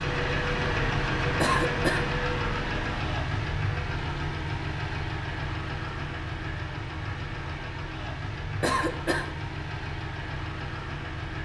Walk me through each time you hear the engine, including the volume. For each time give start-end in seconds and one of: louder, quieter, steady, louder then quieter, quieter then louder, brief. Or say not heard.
0.0-11.3 quieter.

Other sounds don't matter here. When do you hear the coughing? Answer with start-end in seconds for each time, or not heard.
1.4-2.1, 8.6-9.3.